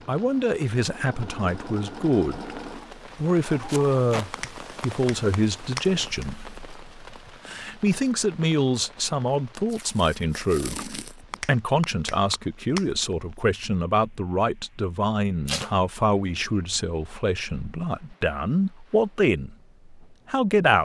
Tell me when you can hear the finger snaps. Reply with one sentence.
You can hear the finger snaps from 4.3 to 6.3 s and from 11.3 to 12.8 s.